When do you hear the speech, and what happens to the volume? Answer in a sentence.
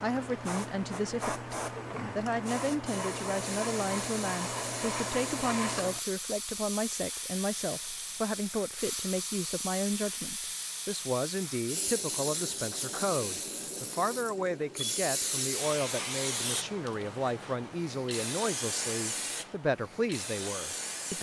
The speech can be heard briefly from 0.0 to 1.6 s; and from 2.1 to 21.1 s, at a steady volume.